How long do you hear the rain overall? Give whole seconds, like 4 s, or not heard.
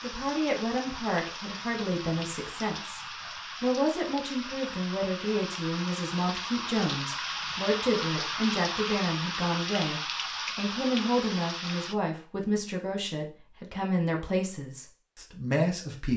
12 s.